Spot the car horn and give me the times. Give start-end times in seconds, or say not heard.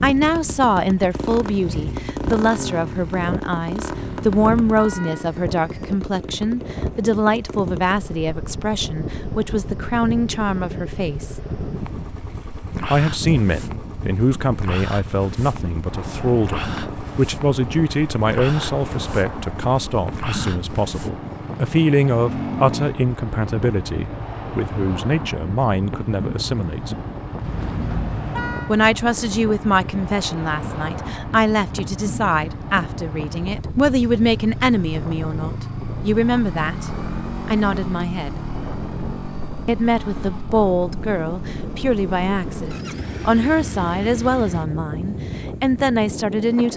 3.9-5.2, 27.4-28.8.